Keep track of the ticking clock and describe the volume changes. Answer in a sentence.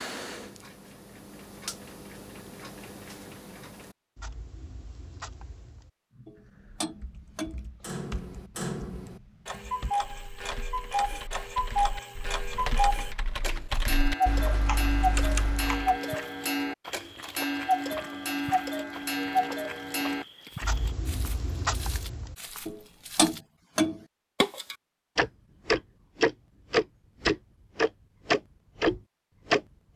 The loudness of the ticking clock goes up.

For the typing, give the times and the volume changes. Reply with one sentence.
You can hear the typing from 6.1 to 15.9 s, getting louder.